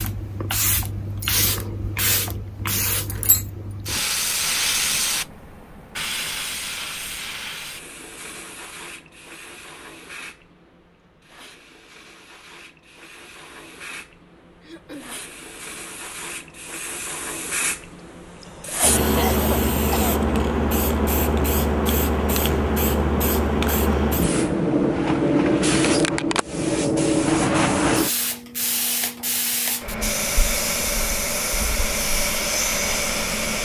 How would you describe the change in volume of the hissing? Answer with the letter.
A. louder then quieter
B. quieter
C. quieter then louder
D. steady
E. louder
C.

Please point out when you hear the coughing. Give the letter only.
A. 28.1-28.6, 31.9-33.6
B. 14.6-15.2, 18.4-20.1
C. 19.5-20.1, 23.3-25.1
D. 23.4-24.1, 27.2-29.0
B.